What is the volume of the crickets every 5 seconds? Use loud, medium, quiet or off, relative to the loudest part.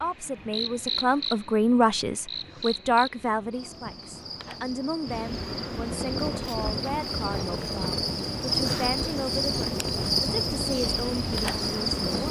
medium, loud, loud.